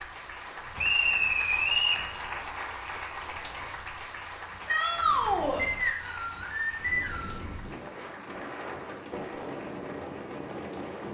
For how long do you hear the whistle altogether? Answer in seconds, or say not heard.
3 s.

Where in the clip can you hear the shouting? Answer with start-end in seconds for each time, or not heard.
4.7-5.7.